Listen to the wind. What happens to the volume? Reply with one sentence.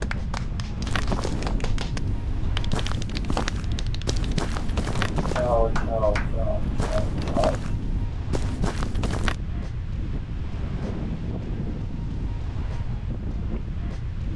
The volume of the wind stays about the same.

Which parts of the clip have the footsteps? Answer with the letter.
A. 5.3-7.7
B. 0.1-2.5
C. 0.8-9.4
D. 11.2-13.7
C.